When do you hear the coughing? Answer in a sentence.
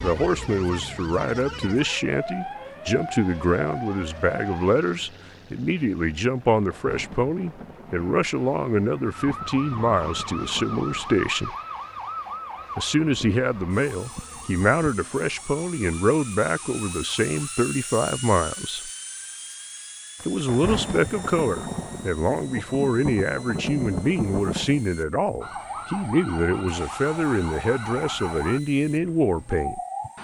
You can't hear the coughing here.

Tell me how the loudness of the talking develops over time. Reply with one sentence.
The volume of the talking stays about the same.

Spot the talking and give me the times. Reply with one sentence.
The talking can be heard from 0.0 to 11.6 s, from 12.8 to 18.9 s and from 20.2 to 29.8 s.